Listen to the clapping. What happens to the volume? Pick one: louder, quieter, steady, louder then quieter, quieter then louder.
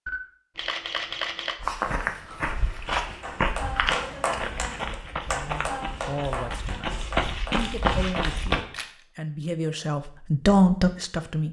quieter.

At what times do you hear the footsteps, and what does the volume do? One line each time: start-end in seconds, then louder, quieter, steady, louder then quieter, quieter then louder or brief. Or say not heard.
1.6-8.6 quieter then louder.